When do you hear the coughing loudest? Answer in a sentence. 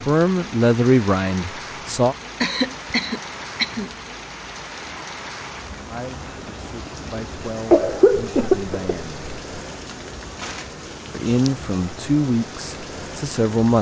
The volume of the coughing peaks at 8 seconds.